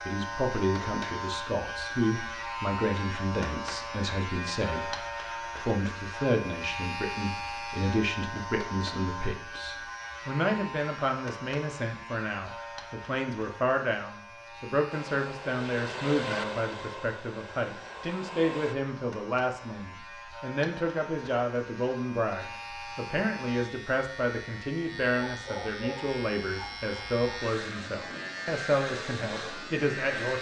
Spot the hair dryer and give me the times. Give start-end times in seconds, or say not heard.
14.9-18.8.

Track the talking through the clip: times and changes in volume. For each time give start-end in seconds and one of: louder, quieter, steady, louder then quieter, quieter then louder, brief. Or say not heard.
0.0-30.3 steady.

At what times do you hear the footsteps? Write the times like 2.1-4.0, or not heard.
not heard.